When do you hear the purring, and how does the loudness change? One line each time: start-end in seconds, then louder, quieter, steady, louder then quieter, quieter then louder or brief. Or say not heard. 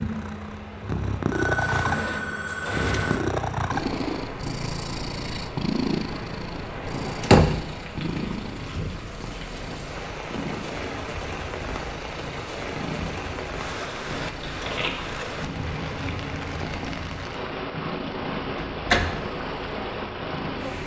0.0-20.8 quieter.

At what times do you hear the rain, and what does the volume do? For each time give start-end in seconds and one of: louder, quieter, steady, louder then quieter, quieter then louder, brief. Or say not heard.
0.0-20.8 louder.